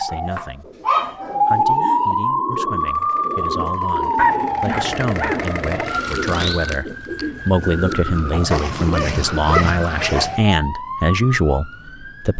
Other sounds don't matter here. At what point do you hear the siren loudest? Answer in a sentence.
The volume of the siren peaks at 2 seconds.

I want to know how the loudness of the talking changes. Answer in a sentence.
The volume of the talking goes up.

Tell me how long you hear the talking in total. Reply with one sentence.
The talking can be heard for 12 seconds in total.